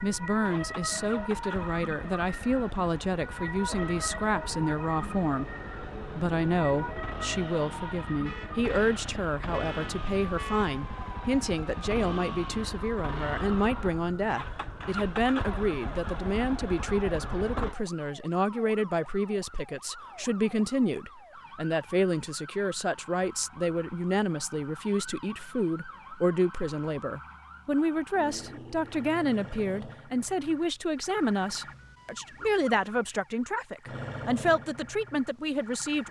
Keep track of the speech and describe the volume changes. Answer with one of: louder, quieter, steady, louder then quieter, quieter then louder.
steady.